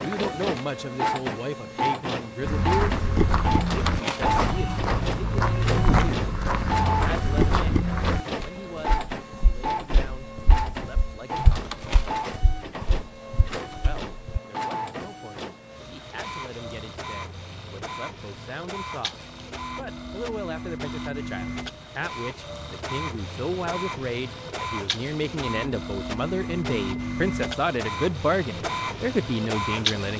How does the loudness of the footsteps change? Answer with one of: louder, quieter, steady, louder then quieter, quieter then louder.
quieter.